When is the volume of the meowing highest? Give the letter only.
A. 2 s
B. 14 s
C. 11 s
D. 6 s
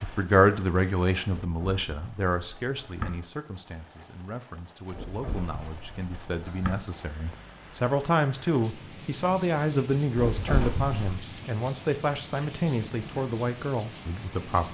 C.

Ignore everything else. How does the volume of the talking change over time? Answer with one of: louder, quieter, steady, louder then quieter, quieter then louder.
quieter then louder.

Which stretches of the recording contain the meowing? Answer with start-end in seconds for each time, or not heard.
1.4-3.2, 4.9-6.8, 10.2-11.2.